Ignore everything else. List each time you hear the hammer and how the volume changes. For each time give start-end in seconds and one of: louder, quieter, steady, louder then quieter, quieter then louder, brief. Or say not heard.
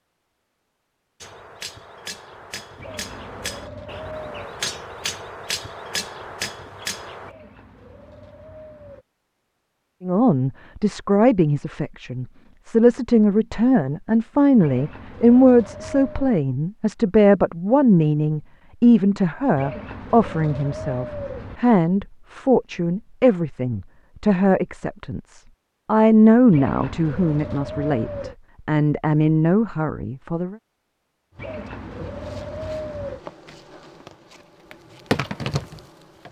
1.2-7.3 louder.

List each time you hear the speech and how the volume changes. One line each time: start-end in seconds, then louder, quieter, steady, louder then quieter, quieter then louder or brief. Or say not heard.
10.0-30.6 steady.